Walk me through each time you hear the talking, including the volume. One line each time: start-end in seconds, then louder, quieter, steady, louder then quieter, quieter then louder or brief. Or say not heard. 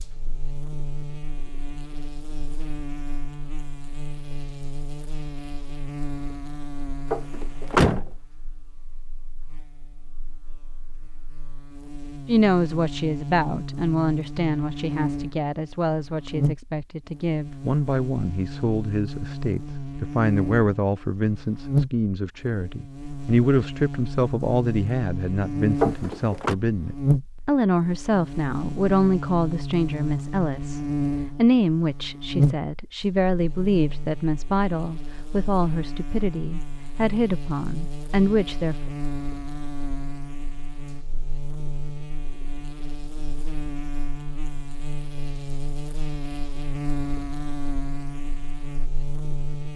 12.2-38.8 steady.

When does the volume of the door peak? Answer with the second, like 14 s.
8 s.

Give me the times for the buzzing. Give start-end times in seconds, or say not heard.
0.0-49.7.